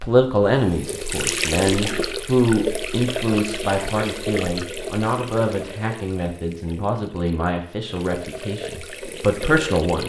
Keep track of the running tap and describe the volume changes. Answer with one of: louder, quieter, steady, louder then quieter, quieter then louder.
quieter then louder.